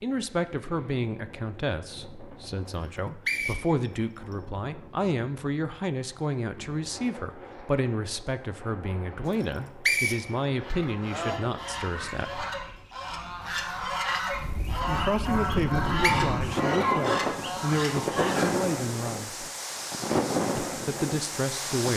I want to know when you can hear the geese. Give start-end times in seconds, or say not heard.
10.6-18.5.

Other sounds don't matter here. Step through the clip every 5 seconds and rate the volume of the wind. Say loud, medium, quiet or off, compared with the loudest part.
quiet, quiet, quiet, loud, loud.